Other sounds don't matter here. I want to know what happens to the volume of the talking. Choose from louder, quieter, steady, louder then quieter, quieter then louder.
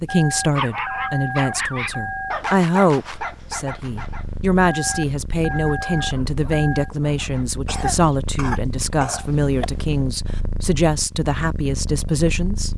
steady.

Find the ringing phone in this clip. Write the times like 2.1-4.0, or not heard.
0.1-2.4, 4.7-6.9, 9.2-10.0.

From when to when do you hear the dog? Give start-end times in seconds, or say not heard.
0.4-7.5.